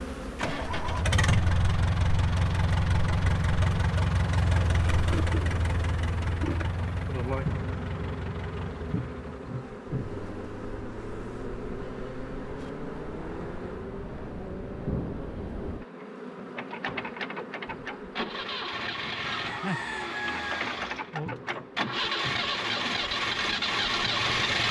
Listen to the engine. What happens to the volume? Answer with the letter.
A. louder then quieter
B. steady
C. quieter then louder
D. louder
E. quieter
C.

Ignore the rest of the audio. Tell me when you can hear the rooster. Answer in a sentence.
You can hear the rooster from 19.2 to 20.9 s.